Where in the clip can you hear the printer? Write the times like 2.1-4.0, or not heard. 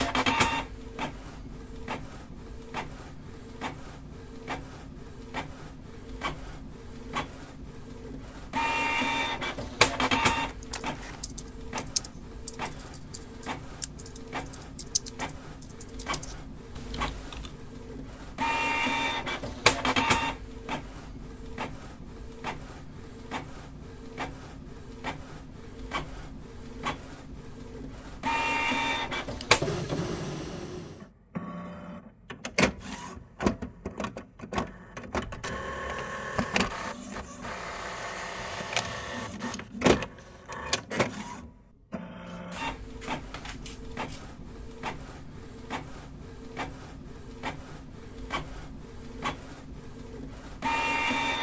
0.0-51.3.